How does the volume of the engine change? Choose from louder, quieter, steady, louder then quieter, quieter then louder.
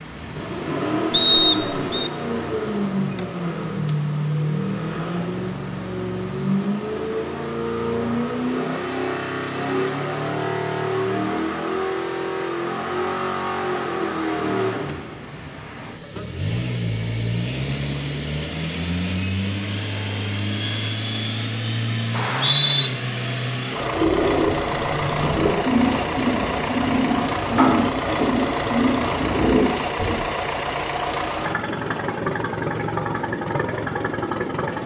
steady.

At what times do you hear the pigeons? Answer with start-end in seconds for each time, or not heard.
23.9-30.1.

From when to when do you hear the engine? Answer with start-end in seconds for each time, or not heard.
0.0-34.8.